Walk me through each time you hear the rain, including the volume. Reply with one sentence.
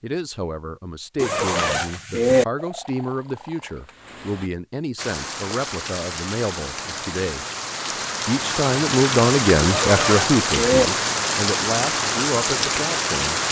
The rain can be heard from 5.0 to 13.4 s, getting louder.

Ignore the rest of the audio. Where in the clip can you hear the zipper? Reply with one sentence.
You can hear the zipper from 1.1 to 2.5 s and from 9.6 to 10.9 s.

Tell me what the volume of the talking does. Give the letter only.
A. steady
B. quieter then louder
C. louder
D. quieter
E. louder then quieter
E.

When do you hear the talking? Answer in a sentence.
You can hear the talking from 0.0 to 7.5 s and from 8.2 to 13.4 s.